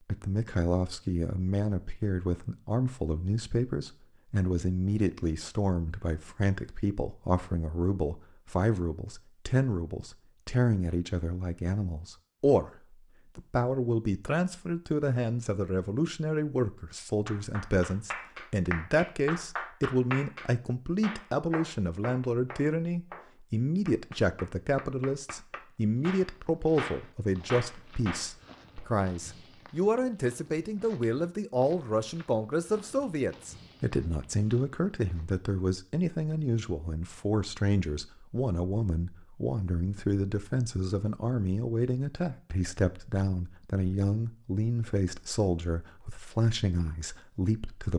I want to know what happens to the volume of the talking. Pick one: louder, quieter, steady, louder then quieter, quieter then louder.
steady.